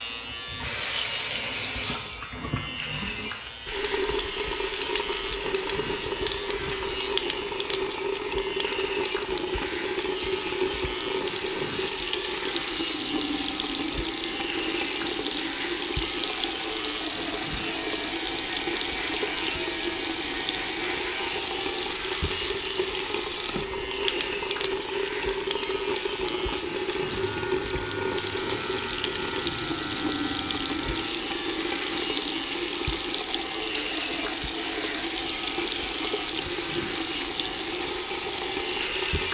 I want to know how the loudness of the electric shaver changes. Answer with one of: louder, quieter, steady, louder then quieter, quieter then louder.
steady.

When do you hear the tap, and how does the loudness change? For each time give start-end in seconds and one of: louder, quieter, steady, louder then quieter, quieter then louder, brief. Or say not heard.
0.1-39.2 steady.